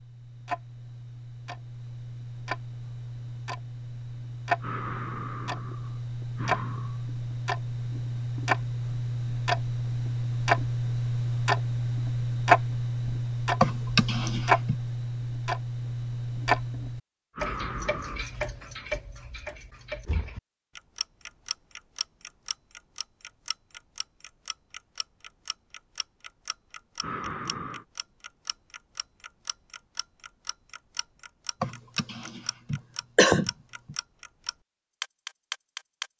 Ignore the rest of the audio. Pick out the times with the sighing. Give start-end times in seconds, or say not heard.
4.6-7.0, 17.4-18.2, 27.0-27.9.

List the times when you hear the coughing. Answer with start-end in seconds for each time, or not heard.
13.6-14.8, 31.6-34.0.